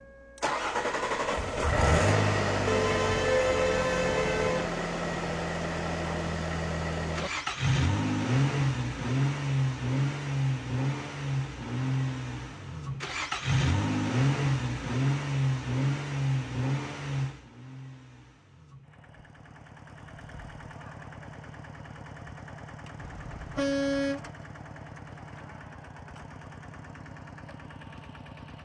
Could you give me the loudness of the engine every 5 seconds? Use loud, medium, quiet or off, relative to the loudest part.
loud, loud, loud, loud, quiet, quiet.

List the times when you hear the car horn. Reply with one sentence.
You can hear the car horn from 2.6 to 4.7 s and from 22.9 to 24.3 s.